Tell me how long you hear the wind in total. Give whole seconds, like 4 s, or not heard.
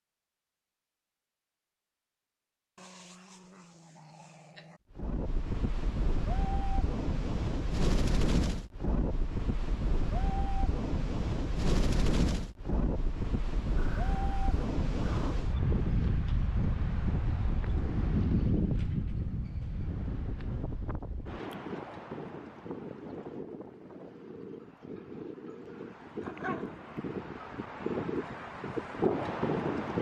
25 s.